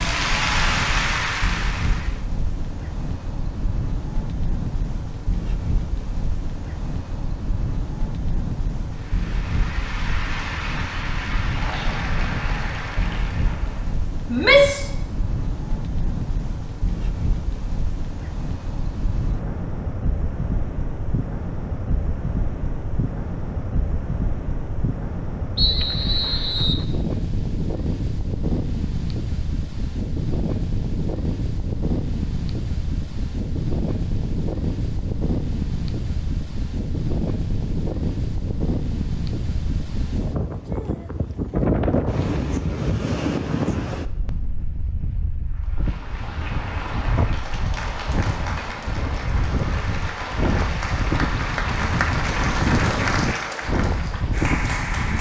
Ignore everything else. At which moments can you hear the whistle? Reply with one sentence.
You can hear the whistle from 25.6 to 26.9 s.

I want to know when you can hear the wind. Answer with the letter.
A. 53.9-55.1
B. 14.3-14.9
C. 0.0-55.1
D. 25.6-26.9
C.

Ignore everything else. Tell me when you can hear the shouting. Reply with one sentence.
You can hear the shouting from 14.3 to 14.9 s.